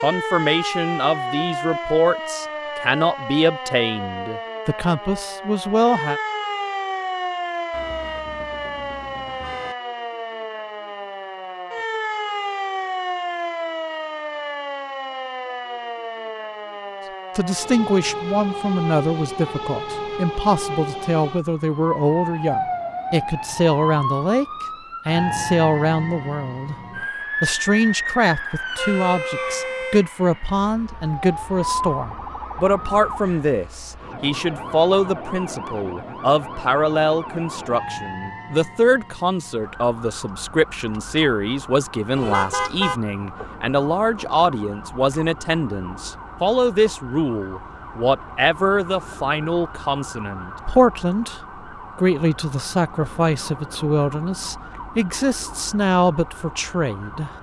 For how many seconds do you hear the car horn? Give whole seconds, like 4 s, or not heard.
4 s.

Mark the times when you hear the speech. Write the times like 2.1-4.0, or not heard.
0.0-6.2, 17.4-26.8, 27.4-57.3.